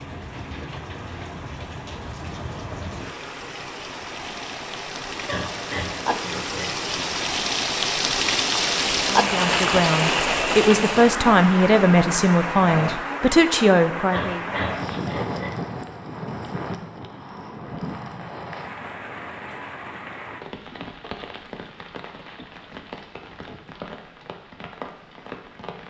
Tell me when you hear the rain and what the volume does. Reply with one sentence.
You can hear the rain from 0.0 to 25.8 s, getting louder then quieter.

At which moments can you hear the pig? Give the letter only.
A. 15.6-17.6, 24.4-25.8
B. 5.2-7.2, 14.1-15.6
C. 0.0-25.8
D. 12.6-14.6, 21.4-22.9
B.